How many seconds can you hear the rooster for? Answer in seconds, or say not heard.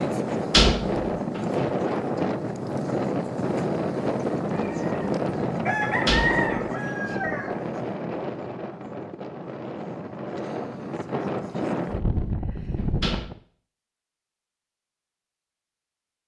3 s.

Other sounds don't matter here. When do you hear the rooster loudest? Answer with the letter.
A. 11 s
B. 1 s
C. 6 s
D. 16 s
C.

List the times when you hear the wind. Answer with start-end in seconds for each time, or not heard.
0.0-13.4.